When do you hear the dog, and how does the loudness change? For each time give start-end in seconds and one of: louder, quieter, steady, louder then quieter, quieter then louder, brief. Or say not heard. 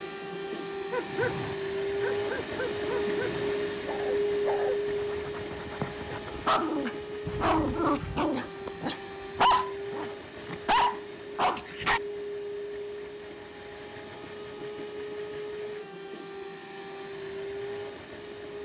0.9-12.0 louder.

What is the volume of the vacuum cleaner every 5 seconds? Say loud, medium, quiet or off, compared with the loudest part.
loud, medium, medium, medium.